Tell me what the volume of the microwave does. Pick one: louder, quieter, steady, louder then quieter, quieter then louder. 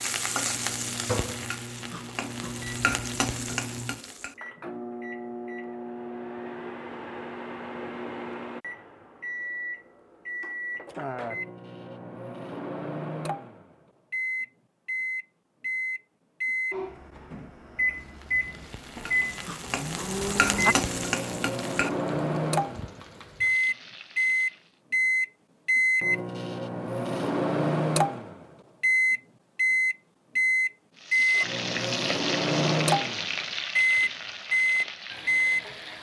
louder.